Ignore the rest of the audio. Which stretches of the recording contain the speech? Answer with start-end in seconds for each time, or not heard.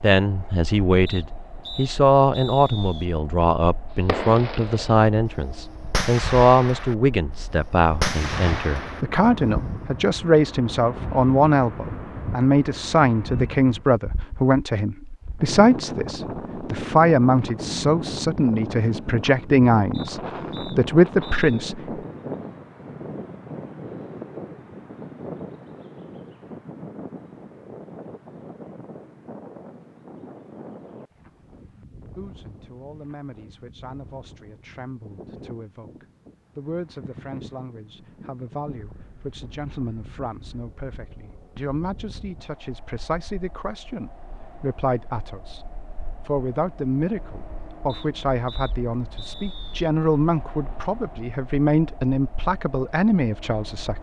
0.0-22.0, 32.1-45.6, 46.2-53.9.